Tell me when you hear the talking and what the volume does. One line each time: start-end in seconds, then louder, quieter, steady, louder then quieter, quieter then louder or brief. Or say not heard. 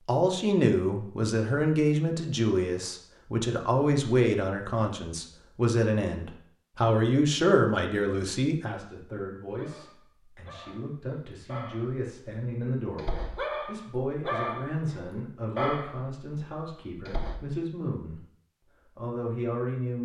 0.0-18.2 quieter
18.9-19.9 brief.